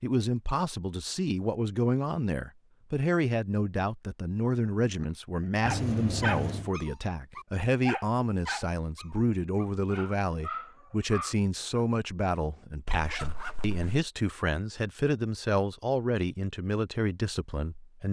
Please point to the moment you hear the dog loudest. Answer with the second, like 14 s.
6 s.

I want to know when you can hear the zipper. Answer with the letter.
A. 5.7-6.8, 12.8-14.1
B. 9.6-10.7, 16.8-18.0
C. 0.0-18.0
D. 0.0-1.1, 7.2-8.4
A.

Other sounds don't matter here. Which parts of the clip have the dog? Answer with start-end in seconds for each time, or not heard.
4.9-11.8.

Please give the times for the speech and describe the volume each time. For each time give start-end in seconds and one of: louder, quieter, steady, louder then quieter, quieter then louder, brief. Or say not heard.
0.0-18.0 steady.